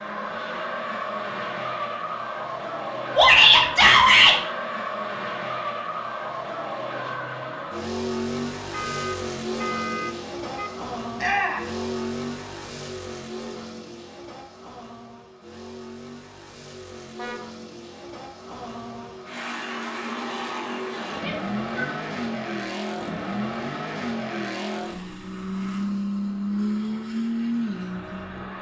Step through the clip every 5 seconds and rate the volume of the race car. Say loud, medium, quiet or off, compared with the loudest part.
loud, loud, medium, medium, loud, loud.